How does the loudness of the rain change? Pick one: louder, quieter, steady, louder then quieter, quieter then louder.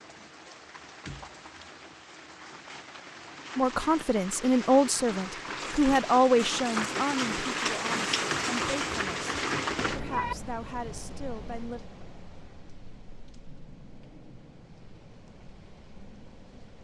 louder then quieter.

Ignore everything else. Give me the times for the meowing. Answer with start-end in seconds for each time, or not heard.
8.3-10.3.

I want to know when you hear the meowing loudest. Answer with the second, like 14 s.
10 s.